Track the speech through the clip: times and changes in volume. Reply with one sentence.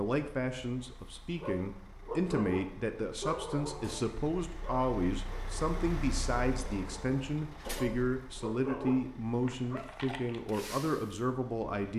You can hear the speech from 0.0 to 11.9 s, at a steady volume.